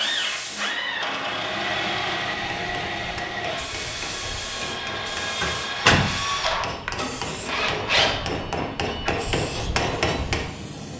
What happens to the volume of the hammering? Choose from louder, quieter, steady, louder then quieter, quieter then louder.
louder.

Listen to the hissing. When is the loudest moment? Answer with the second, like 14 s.
2 s.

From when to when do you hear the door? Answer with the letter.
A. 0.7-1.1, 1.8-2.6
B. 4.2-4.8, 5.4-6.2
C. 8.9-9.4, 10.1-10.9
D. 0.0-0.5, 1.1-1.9
B.